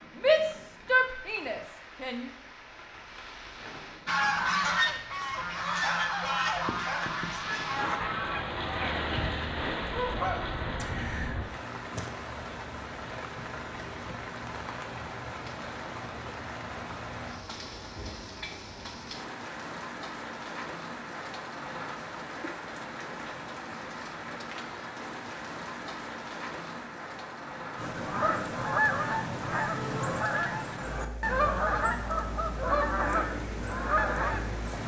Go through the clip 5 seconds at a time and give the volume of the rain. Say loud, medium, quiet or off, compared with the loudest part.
medium, loud, loud, loud, loud, loud, medium.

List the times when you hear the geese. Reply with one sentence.
The geese can be heard from 4.0 to 11.4 s and from 27.8 to 34.8 s.